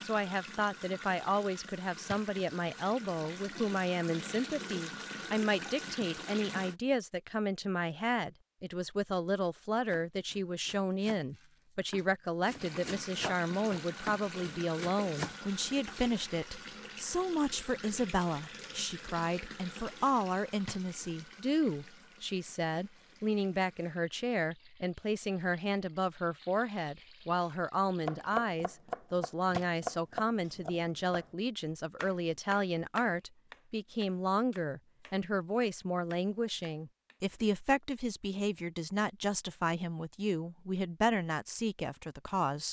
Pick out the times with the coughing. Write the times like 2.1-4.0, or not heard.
not heard.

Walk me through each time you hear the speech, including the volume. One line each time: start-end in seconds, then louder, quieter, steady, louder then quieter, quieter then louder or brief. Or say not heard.
0.0-42.6 steady.